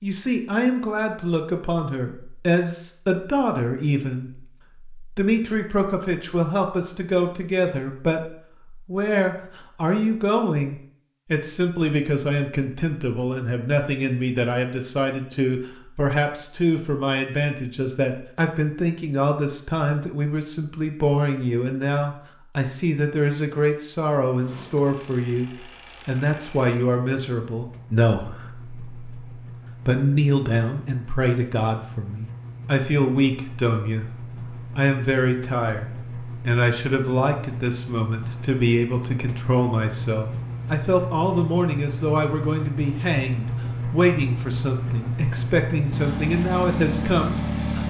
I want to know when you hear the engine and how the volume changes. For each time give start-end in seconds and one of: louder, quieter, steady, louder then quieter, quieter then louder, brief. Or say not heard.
24.3-47.8 louder.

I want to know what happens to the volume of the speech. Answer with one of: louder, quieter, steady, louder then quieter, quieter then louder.
steady.